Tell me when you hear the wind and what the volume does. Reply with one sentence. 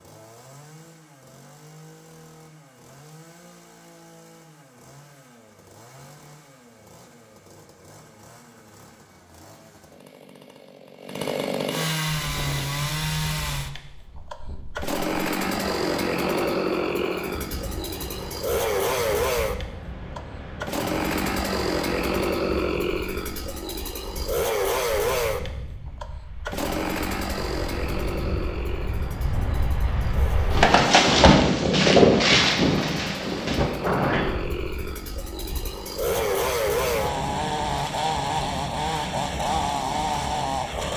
You can hear the wind from 12.1 to 40.9 s, getting louder then quieter.